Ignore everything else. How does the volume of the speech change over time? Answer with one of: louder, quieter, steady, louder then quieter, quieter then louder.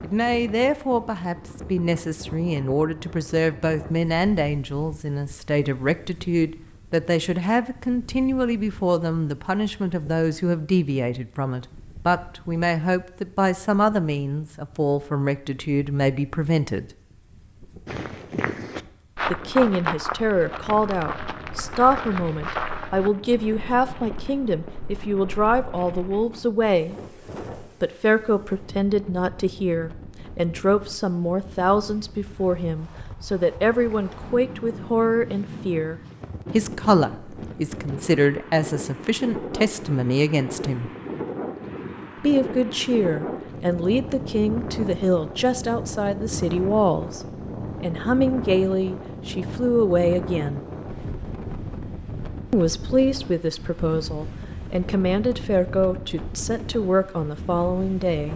steady.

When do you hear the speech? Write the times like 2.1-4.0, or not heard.
0.0-16.9, 19.3-26.9, 27.6-40.9, 42.2-50.6, 52.5-58.3.